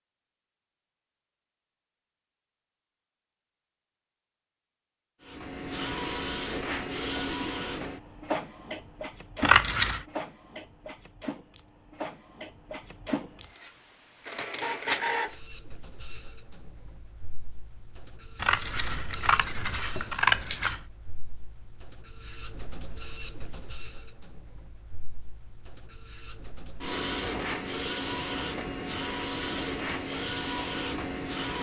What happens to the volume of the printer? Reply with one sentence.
The volume of the printer goes down, then up.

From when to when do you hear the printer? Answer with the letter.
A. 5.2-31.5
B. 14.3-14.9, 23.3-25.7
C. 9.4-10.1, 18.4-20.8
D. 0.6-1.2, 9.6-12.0
A.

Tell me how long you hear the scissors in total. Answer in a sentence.
The scissors can be heard for 3 seconds in total.